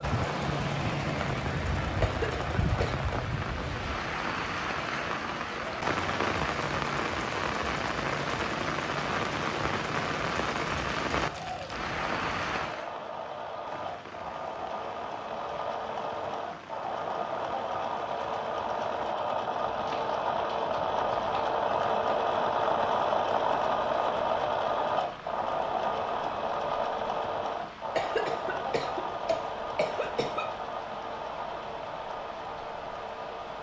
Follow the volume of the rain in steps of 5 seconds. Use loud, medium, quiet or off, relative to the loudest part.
loud, loud, loud, quiet, quiet, quiet, quiet.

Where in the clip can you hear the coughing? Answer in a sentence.
The coughing can be heard from 2.0 to 3.0 s and from 27.9 to 30.4 s.